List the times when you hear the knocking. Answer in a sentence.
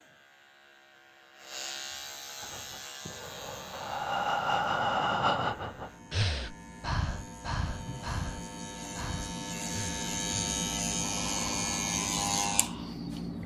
The knocking can't be heard in this clip.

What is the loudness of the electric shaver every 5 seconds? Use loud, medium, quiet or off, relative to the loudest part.
quiet, medium, loud.